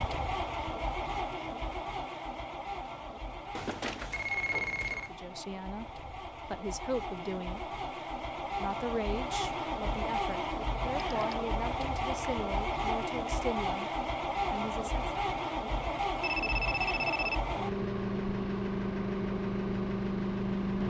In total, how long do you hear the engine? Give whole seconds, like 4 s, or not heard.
21 s.